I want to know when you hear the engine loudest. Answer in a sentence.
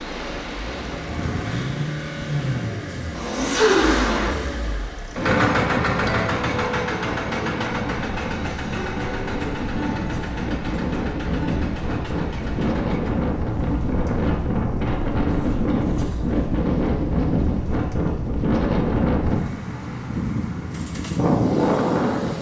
The volume of the engine peaks at 4 seconds.